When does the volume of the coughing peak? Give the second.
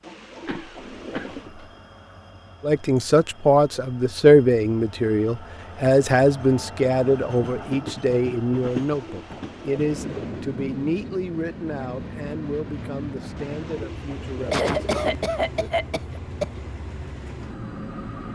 15 s.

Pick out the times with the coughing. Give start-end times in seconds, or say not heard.
0.5-1.8, 14.5-16.4.